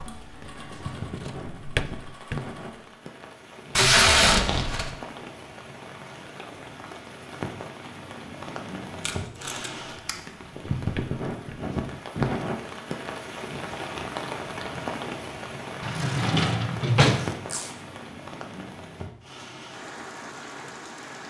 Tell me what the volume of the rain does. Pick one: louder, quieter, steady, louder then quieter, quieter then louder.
louder then quieter.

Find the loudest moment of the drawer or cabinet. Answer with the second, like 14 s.
17 s.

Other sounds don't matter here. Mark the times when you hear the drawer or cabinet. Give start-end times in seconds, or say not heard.
0.9-2.5, 10.2-11.7, 15.8-17.4.